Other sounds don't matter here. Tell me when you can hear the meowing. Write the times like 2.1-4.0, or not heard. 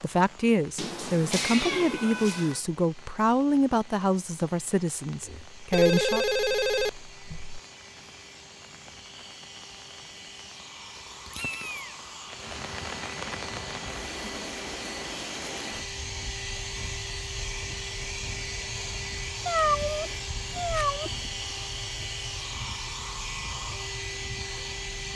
0.8-2.6, 11.2-11.9, 19.4-21.1.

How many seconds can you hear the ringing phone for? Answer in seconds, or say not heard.
2 s.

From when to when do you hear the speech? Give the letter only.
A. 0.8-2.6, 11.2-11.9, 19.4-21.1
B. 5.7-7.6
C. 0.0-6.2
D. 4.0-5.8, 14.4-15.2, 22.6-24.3
C.